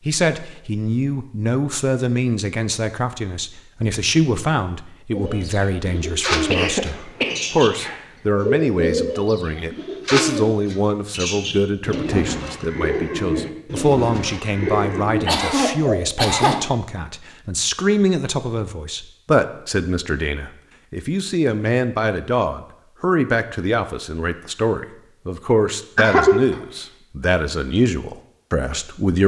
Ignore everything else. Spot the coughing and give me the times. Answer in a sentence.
The coughing can be heard from 6.3 to 8.0 s, from 15.2 to 16.7 s and from 25.9 to 26.4 s.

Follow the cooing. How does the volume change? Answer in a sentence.
The loudness of the cooing stays about the same.